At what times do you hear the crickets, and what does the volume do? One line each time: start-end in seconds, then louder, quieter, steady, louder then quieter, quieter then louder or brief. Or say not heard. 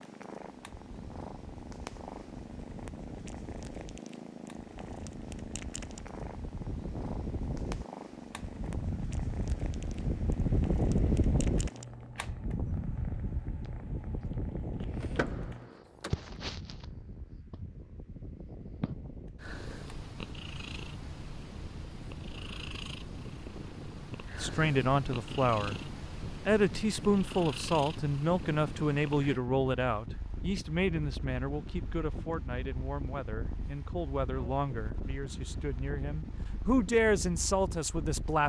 not heard.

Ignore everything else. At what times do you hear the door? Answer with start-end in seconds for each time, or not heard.
15.0-16.1.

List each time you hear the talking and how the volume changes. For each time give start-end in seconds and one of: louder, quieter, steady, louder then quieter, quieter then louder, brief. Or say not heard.
24.4-38.4 quieter then louder.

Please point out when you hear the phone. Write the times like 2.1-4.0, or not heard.
not heard.